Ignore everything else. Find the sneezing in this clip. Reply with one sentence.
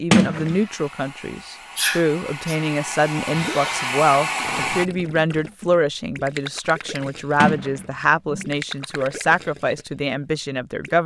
The sneezing can be heard from 1.8 to 2.5 s.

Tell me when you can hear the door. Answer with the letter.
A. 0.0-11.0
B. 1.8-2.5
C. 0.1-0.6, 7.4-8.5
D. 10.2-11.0
C.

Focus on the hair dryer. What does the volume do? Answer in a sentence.
The loudness of the hair dryer goes up.